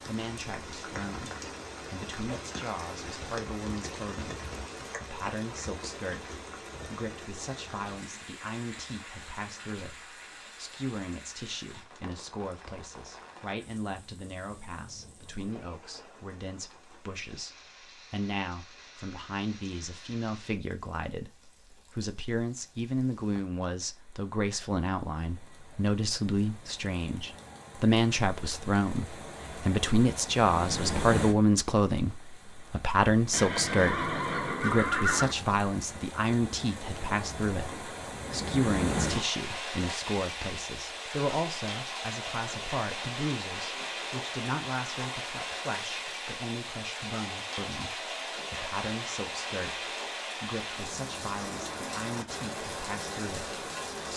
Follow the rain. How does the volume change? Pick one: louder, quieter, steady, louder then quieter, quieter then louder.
quieter then louder.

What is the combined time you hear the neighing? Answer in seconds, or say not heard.
2 s.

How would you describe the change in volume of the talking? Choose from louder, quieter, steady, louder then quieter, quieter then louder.
louder then quieter.